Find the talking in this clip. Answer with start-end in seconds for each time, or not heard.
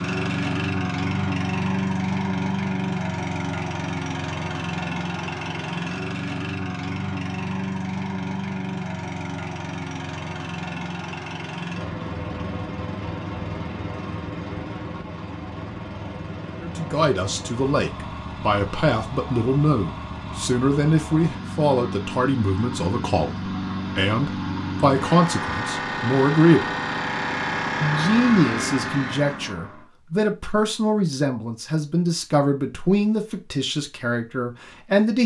16.6-26.8, 27.8-35.2.